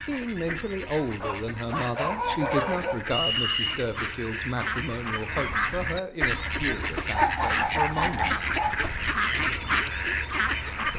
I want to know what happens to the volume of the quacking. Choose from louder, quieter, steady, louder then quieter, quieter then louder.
louder.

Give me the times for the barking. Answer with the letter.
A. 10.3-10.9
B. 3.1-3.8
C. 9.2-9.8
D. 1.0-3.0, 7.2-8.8
D.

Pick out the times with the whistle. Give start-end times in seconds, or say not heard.
3.1-3.8.